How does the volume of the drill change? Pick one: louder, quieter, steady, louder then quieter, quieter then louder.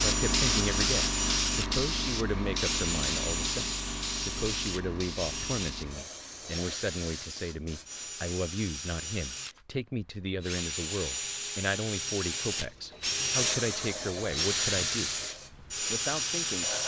quieter then louder.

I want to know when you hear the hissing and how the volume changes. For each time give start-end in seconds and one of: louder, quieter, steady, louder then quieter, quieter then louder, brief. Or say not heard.
0.0-8.2 quieter
12.3-16.8 quieter.